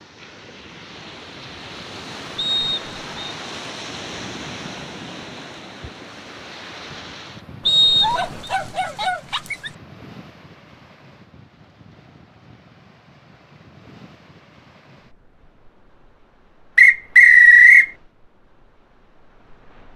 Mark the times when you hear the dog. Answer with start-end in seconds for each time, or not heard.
8.0-9.8.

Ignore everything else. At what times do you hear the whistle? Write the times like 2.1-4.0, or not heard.
2.4-3.4, 7.7-8.5, 16.8-17.9.